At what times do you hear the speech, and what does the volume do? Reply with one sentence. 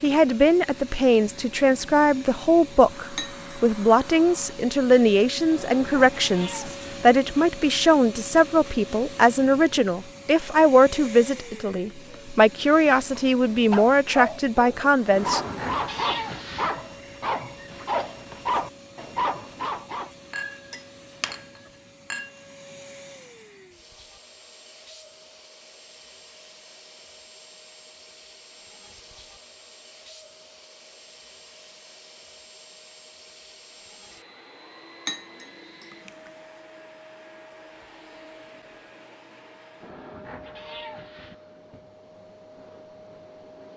The speech can be heard from 0.0 to 15.4 s, at a steady volume.